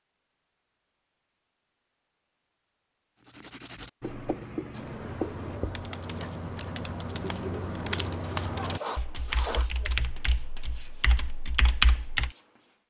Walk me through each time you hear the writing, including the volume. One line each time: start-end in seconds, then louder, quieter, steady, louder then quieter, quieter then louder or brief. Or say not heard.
3.2-12.8 quieter.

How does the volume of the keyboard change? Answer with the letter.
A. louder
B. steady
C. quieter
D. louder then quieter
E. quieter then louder
A.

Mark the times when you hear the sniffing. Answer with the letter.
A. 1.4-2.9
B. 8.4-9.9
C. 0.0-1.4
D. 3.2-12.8
B.